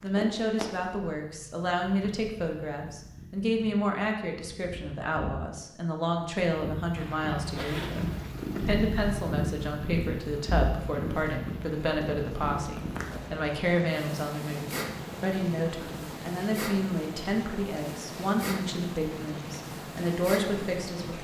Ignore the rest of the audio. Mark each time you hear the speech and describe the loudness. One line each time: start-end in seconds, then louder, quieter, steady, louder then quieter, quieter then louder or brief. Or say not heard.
0.0-21.1 steady.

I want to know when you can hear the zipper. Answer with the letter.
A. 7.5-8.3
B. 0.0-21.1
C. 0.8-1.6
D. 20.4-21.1
A.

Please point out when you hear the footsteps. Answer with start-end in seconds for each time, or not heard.
not heard.